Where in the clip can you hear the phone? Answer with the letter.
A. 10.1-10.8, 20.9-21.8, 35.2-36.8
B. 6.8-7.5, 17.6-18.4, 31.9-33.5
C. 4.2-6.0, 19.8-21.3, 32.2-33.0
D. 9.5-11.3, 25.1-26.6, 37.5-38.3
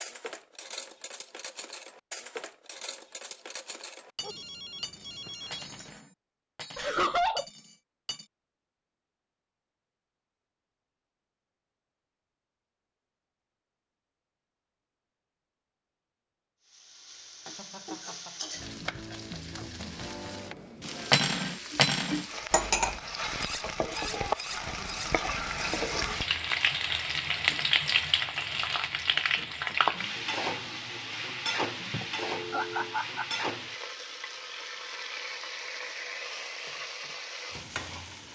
C.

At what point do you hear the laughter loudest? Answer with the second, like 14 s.
7 s.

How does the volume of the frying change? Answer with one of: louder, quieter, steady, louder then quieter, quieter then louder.
louder then quieter.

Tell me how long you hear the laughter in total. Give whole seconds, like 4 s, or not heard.
3 s.